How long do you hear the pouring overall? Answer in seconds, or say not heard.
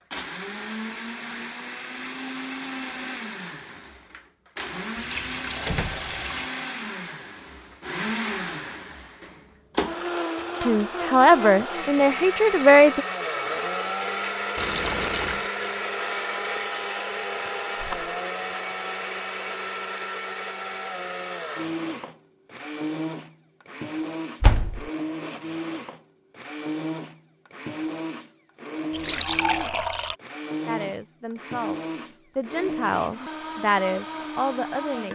4 s.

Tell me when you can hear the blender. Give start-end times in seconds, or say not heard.
0.1-35.1.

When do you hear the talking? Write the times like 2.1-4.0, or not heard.
10.6-13.1, 30.6-35.1.